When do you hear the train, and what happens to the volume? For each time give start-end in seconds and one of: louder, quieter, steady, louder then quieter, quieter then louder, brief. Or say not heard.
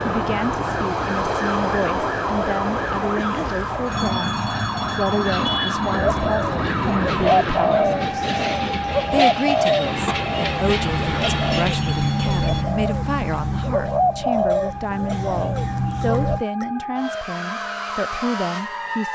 0.0-12.7 steady.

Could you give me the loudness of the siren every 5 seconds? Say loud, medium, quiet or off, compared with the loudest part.
loud, loud, medium, loud.